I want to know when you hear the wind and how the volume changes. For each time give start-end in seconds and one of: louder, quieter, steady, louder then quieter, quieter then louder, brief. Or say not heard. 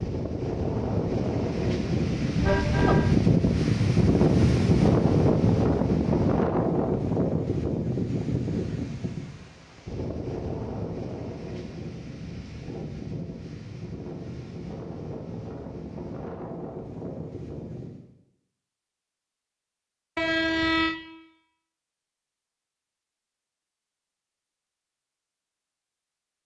0.0-18.1 quieter.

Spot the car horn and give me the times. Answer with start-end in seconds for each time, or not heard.
2.4-3.1, 20.1-20.9.